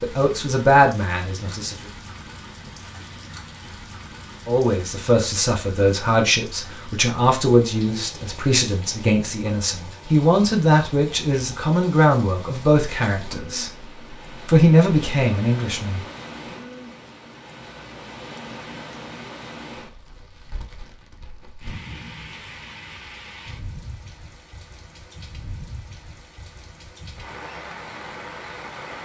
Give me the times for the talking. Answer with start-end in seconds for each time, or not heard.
0.0-1.8, 4.5-16.6.